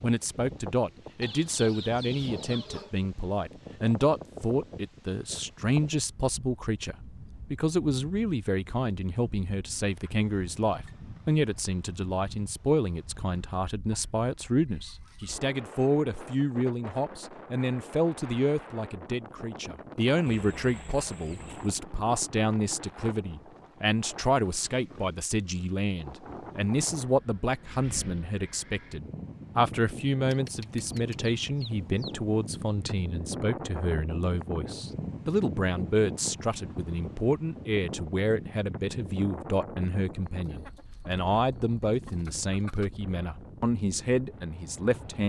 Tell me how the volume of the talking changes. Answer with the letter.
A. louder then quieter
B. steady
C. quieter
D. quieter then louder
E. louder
B.